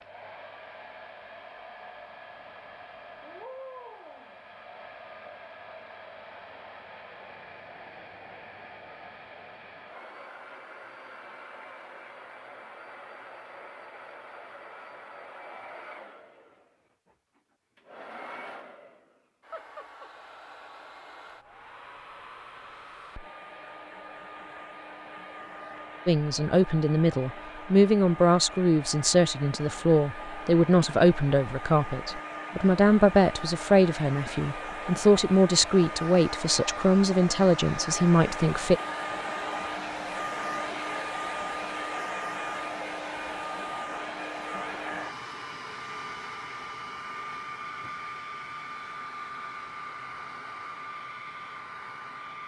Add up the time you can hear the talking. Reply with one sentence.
You can hear the talking for 13 seconds altogether.